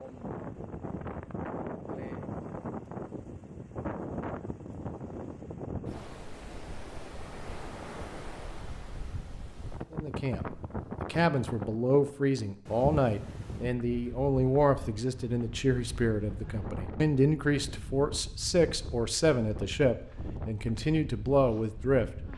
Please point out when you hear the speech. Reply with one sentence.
The speech can be heard from 9.9 to 22.1 s.